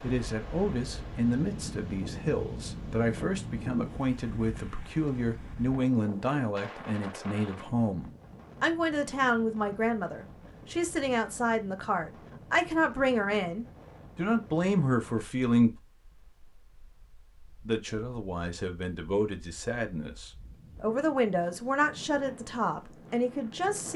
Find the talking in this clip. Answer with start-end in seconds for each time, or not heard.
0.0-15.7, 17.6-23.9.